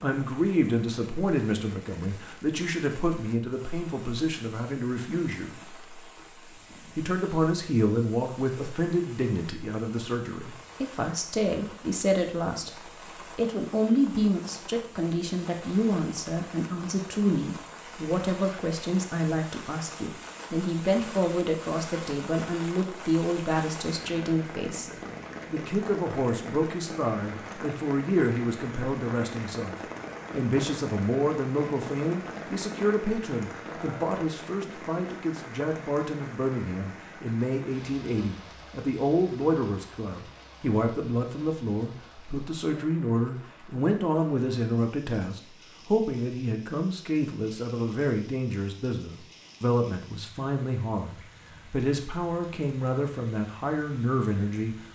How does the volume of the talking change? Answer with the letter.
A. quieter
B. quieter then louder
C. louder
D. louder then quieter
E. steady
E.